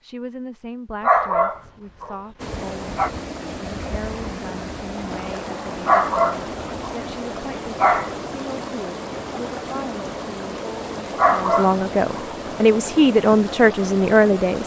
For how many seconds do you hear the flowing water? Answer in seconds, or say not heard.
12 s.